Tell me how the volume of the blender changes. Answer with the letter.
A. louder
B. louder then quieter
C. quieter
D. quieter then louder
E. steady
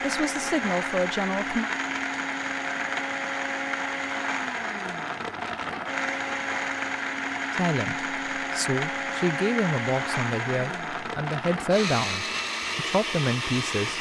E.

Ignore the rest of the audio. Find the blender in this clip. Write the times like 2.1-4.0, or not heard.
0.0-13.9.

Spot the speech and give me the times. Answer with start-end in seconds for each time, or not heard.
0.0-1.7, 7.5-13.9.